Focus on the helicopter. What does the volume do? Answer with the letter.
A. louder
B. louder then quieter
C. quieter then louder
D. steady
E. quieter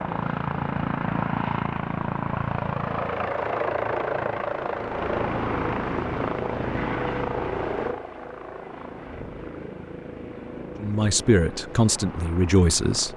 E.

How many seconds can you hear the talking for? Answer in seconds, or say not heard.
2 s.